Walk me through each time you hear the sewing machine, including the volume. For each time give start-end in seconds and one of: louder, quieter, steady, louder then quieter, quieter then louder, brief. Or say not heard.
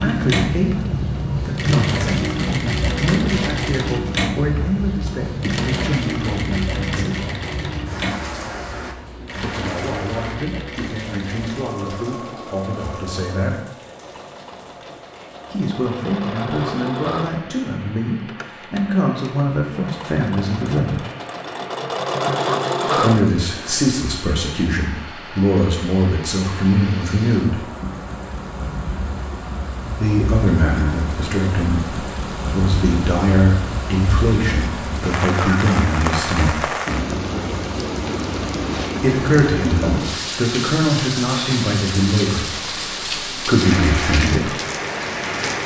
0.0-23.8 quieter then louder.